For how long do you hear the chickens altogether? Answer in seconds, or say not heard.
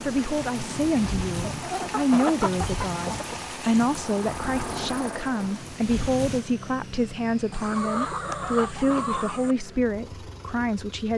4 s.